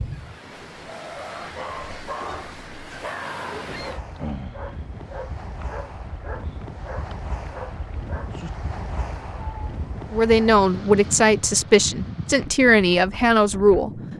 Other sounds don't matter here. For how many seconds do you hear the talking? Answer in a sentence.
You can hear the talking for 4 seconds altogether.